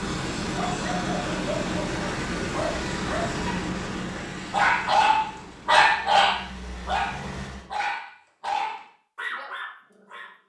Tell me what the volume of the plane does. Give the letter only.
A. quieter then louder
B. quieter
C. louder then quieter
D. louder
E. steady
B.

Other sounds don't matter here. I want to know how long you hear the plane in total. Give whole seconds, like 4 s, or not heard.
8 s.